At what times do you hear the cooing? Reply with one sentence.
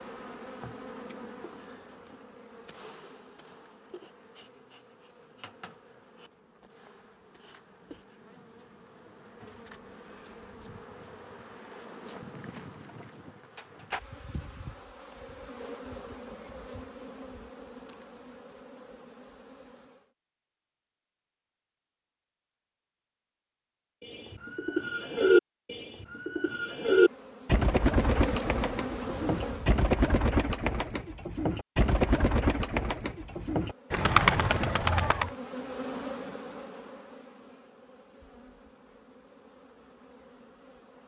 The cooing can be heard from 24.0 to 35.3 s.